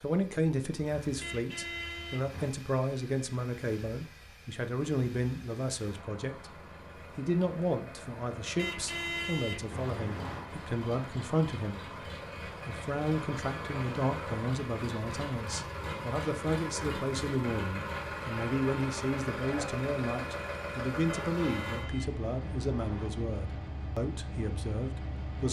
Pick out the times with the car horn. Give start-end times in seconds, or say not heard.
1.2-2.5, 8.6-10.4, 21.1-23.1.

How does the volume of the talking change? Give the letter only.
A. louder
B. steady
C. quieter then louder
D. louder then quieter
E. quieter
B.